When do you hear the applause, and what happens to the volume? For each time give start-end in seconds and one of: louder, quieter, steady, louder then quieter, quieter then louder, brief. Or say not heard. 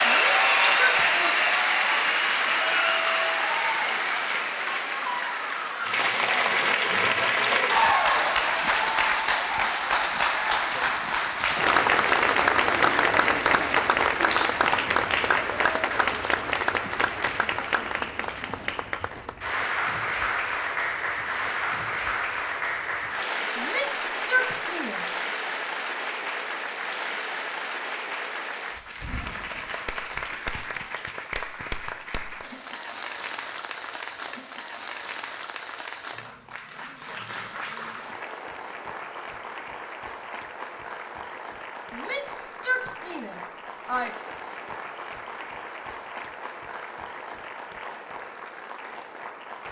0.0-49.6 quieter.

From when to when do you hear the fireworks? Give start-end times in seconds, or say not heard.
not heard.